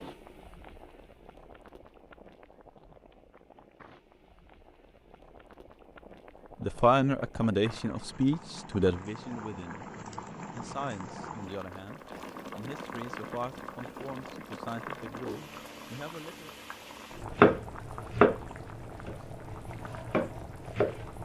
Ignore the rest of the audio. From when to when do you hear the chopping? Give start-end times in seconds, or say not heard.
17.3-18.4, 19.1-21.0.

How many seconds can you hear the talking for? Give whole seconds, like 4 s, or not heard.
9 s.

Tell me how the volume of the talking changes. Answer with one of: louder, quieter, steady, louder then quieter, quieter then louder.
quieter.